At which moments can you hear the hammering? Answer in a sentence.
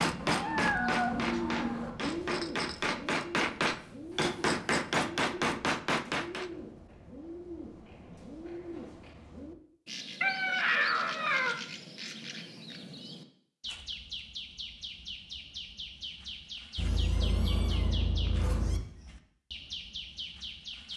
You can hear the hammering from 0.0 to 6.5 s.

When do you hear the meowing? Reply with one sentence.
The meowing can be heard from 0.1 to 1.9 s, from 10.2 to 11.6 s and from 16.8 to 18.8 s.